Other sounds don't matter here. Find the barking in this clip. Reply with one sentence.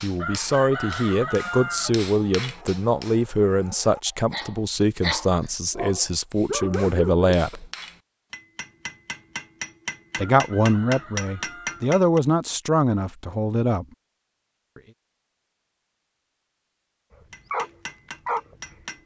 You can hear the barking from 0.3 to 7.6 s and from 17.5 to 18.8 s.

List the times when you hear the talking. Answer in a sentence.
You can hear the talking from 0.0 to 7.7 s and from 10.2 to 13.8 s.